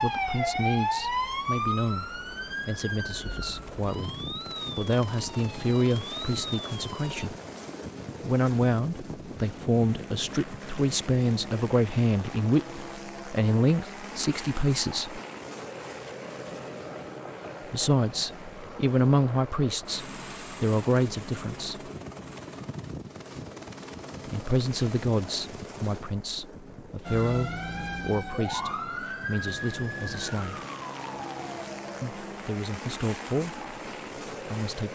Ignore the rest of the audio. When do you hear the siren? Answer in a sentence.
The siren can be heard from 0.0 to 7.3 s and from 27.1 to 32.1 s.